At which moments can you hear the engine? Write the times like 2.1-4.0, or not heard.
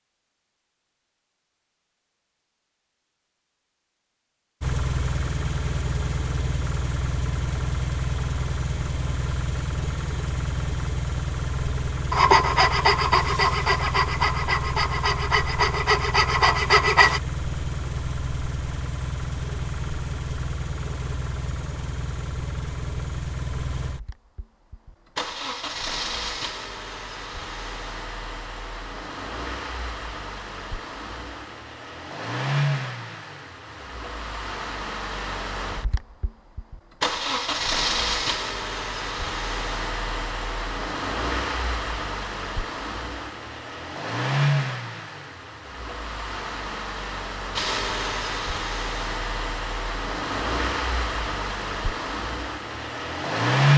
4.6-53.7.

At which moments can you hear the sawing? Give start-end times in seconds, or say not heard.
12.1-17.2.